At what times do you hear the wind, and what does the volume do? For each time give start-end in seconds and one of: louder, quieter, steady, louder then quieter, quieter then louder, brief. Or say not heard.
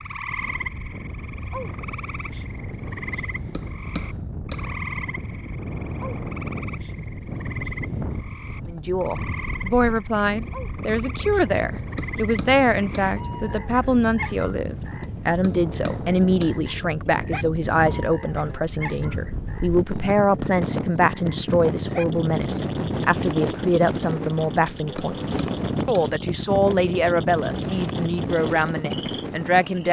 0.0-29.8 louder.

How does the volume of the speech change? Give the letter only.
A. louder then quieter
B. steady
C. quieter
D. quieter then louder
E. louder
B.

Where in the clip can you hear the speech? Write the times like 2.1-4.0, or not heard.
8.7-29.8.